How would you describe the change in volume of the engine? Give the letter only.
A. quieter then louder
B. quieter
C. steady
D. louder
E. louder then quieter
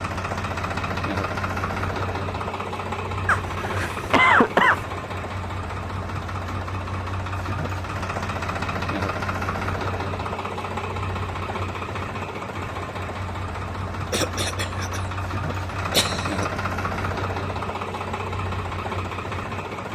C.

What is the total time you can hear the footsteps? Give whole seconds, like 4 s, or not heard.
not heard.